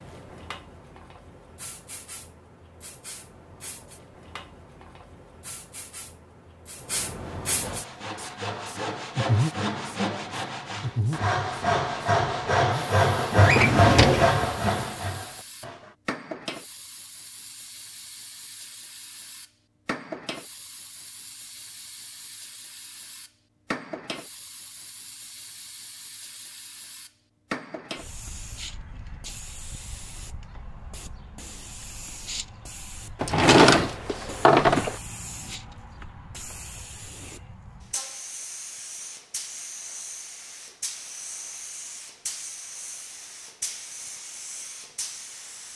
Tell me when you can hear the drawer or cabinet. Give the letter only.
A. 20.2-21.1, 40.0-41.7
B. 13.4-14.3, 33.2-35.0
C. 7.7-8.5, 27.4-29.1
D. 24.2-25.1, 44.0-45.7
B.